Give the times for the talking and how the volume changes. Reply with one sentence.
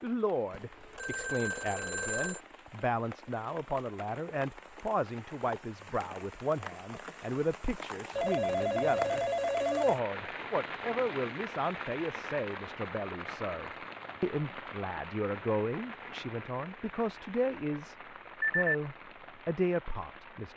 The talking can be heard from 0.0 to 17.9 s, at a steady volume; and briefly from 18.6 to 20.5 s.